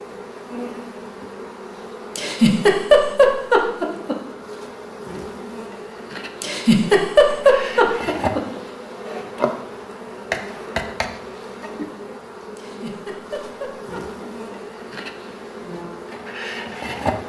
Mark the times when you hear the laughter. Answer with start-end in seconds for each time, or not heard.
2.1-4.2, 6.4-8.4, 12.6-14.6.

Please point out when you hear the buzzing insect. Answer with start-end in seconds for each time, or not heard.
0.0-17.2.